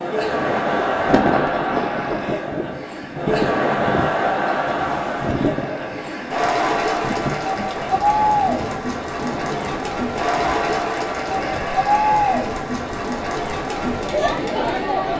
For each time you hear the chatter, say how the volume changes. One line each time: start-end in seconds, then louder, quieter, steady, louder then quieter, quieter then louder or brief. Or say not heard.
0.0-15.1 steady.